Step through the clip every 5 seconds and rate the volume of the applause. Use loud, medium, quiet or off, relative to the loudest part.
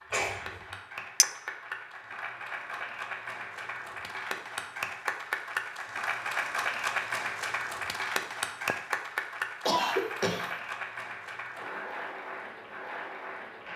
medium, loud, medium.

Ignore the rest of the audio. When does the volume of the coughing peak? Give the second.
10 s.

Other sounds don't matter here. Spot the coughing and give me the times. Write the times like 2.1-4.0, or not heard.
0.1-0.7, 9.7-10.5.